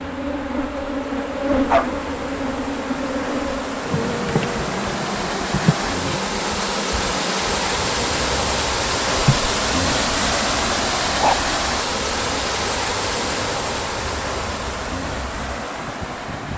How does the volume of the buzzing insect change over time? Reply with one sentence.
The volume of the buzzing insect goes down.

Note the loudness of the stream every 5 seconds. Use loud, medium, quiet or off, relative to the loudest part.
medium, loud, loud, medium.